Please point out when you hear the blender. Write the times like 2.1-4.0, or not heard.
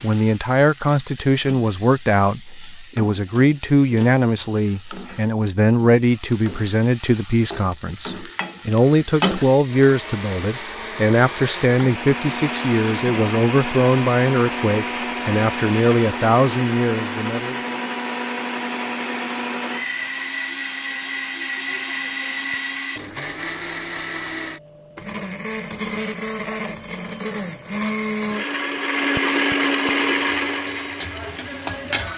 9.7-32.0.